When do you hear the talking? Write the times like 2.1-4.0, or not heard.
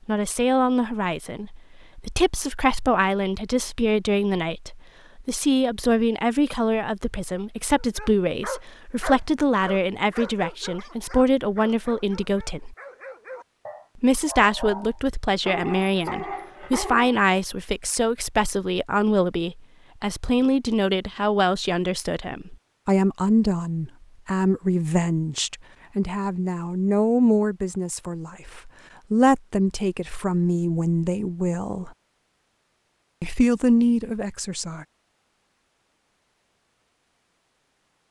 0.1-12.8, 13.9-31.9, 33.2-34.9.